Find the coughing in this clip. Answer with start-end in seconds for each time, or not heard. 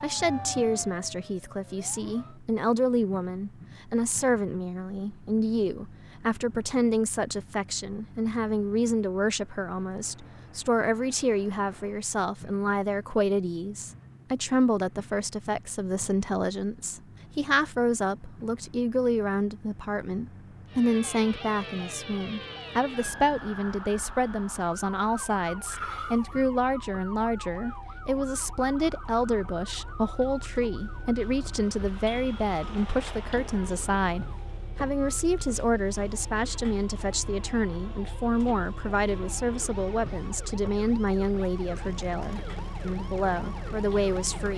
25.6-26.4.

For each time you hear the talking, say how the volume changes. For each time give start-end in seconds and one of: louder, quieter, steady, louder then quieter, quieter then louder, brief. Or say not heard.
0.0-44.5 steady.